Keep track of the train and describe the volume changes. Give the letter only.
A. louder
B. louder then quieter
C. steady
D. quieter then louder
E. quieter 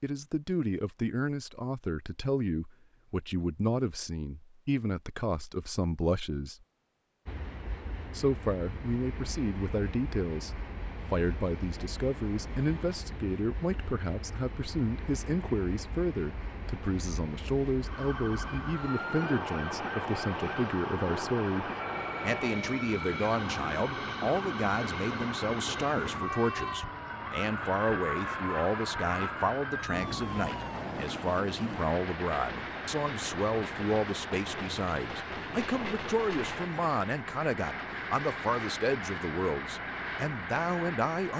A.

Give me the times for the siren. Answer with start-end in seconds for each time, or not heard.
17.8-30.9.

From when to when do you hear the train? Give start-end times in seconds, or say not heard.
7.2-41.3.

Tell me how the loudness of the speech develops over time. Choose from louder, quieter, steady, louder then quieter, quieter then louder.
steady.